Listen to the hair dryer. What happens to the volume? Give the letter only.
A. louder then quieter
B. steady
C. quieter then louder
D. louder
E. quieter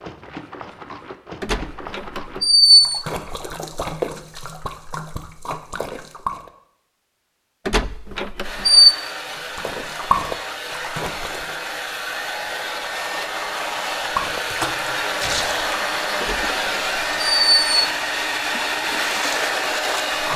D.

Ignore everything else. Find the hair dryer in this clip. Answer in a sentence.
The hair dryer can be heard from 8.4 to 20.3 s.